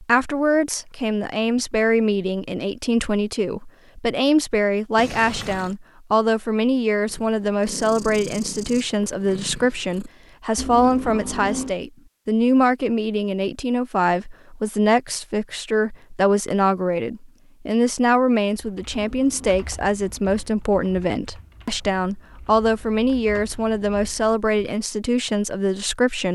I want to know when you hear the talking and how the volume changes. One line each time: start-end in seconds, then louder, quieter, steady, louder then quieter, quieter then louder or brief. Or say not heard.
0.0-26.3 steady.